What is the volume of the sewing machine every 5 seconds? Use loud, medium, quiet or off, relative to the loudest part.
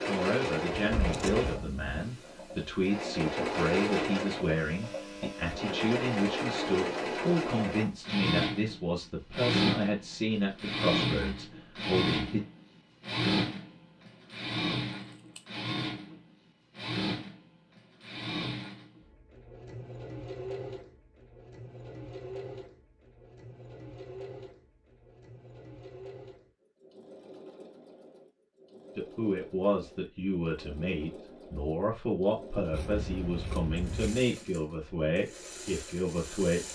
loud, loud, loud, medium, quiet, quiet, quiet, quiet.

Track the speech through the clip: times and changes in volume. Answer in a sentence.
The speech can be heard from 0.1 to 12.4 s, at a steady volume; and from 28.9 to 36.6 s, at a steady volume.